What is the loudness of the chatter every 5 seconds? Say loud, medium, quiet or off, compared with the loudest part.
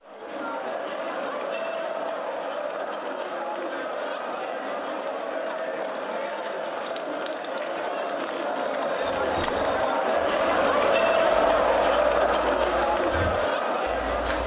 medium, medium, loud.